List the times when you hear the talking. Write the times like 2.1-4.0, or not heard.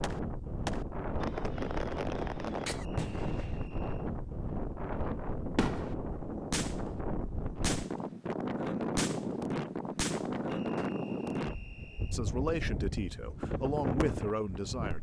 12.1-14.9.